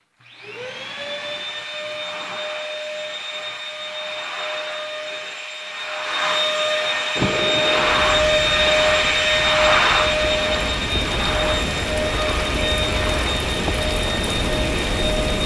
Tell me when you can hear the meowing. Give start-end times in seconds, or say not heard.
not heard.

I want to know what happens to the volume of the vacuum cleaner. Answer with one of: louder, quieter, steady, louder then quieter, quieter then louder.
louder then quieter.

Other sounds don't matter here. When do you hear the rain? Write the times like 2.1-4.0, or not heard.
7.2-15.4.